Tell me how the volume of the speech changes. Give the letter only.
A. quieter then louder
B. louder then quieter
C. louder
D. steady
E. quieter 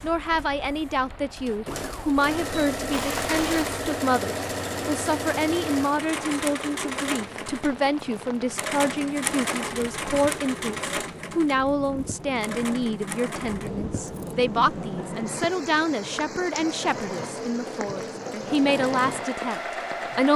D.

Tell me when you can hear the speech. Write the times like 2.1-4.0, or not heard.
0.0-20.3.